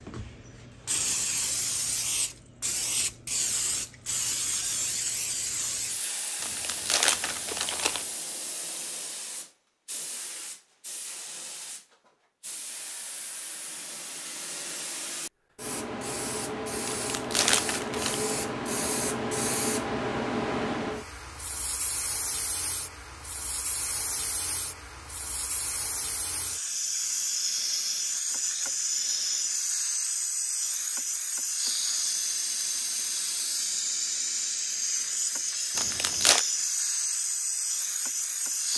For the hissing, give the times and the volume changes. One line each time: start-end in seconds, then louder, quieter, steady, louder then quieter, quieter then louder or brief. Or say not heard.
0.0-38.7 quieter then louder.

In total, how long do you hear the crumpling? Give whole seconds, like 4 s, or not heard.
4 s.